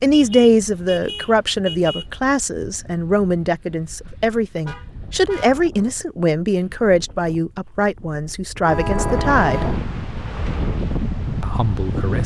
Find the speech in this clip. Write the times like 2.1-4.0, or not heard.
0.0-9.7, 11.4-12.2.